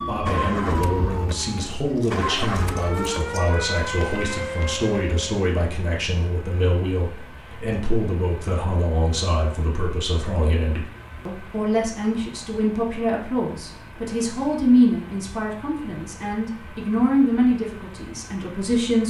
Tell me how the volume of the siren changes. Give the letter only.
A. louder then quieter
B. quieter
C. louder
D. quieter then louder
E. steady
D.